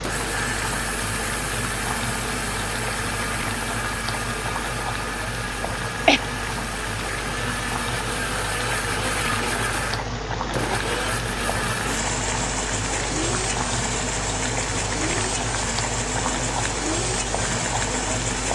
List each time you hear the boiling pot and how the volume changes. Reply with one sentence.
The boiling pot can be heard from 0.0 to 18.4 s, at a steady volume.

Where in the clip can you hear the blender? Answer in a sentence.
You can hear the blender from 0.0 to 18.4 s.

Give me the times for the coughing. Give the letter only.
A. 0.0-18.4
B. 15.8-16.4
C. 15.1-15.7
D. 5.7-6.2
D.